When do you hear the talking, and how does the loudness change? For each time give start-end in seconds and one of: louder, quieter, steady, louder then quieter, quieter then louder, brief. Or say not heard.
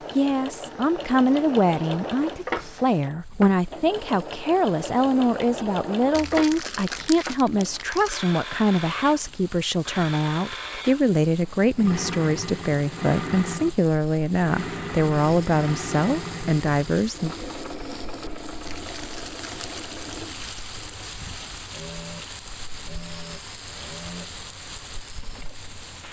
0.1-17.4 steady.